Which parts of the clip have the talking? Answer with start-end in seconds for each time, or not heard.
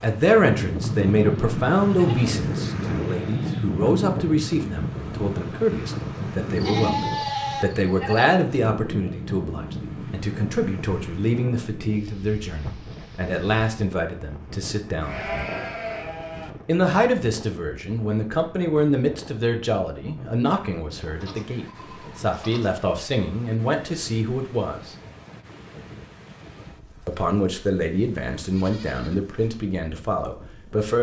0.0-15.3, 16.6-24.9, 27.1-30.9.